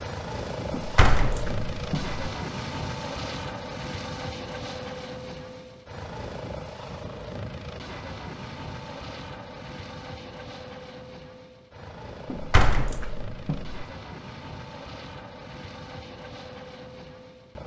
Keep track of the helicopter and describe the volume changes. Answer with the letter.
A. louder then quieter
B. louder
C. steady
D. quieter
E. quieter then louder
D.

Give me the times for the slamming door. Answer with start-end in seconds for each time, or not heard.
0.7-2.2, 12.3-13.8.